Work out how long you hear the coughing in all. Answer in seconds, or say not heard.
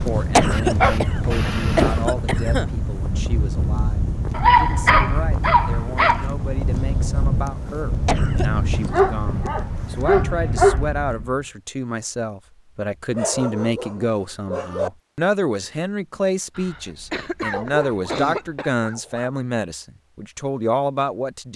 5 s.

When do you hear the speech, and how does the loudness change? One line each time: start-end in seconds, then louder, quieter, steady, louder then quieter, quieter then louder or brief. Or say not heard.
0.0-21.5 louder.